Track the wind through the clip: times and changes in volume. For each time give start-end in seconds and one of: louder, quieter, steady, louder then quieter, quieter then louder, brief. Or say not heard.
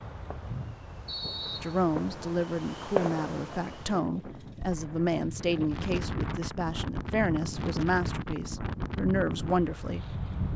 0.0-10.5 louder.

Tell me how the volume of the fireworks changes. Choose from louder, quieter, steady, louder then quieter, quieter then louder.
louder then quieter.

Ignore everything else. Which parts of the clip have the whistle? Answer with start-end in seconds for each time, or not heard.
1.1-1.8.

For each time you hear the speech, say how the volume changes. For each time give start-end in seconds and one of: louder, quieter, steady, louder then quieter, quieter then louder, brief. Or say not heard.
1.6-10.5 steady.